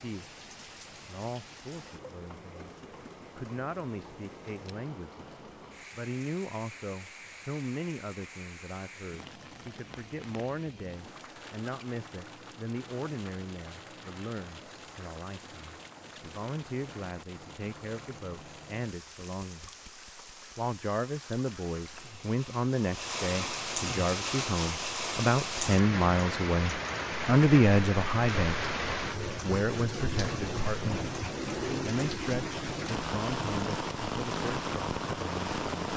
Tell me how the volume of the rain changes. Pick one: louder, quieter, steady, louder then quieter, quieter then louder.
louder.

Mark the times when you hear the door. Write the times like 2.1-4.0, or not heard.
not heard.